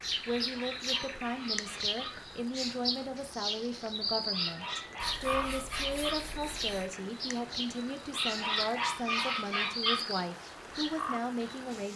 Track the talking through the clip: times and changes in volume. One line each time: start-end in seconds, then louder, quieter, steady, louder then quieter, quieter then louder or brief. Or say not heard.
0.2-11.9 steady.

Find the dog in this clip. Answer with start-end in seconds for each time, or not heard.
0.2-2.2, 4.3-6.2, 8.1-10.0.